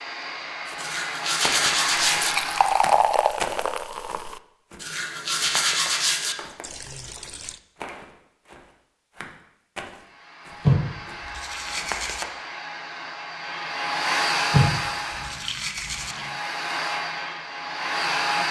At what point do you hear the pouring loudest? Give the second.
3 s.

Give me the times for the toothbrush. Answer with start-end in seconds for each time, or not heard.
0.8-2.4, 4.8-6.3, 10.6-12.2, 14.5-16.1.